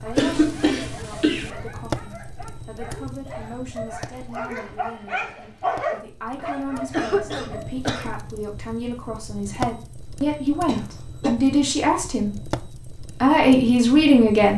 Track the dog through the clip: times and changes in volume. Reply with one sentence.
You can hear the dog from 0.0 to 8.2 s, getting louder then quieter.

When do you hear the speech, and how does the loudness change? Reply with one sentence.
The speech can be heard from 0.0 to 12.6 s, getting louder; and briefly from 13.2 to 14.5 s.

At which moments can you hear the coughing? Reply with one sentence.
The coughing can be heard from 0.1 to 1.5 s, from 6.9 to 8.1 s and from 10.7 to 11.3 s.